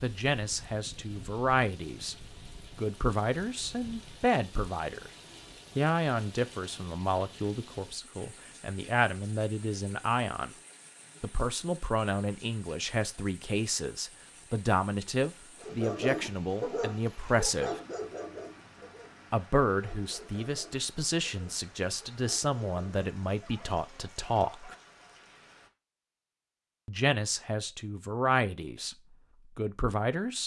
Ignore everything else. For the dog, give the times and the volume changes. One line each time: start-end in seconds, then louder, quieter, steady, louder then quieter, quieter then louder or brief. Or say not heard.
15.6-24.9 quieter.